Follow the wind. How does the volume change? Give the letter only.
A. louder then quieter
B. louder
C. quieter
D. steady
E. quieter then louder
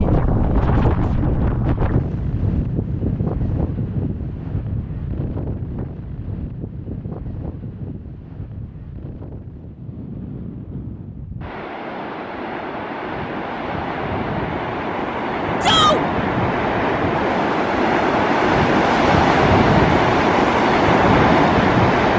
E.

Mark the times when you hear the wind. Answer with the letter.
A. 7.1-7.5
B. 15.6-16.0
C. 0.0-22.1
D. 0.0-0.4
C.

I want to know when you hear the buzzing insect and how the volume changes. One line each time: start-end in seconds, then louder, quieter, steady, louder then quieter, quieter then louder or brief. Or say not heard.
not heard.